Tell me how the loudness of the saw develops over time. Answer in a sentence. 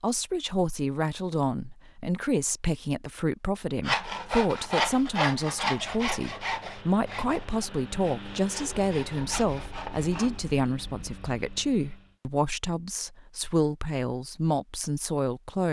The volume of the saw goes down, then up.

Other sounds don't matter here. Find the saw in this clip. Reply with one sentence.
You can hear the saw from 3.9 to 10.4 s.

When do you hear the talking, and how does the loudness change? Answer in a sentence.
The talking can be heard from 0.0 to 15.6 s, at a steady volume.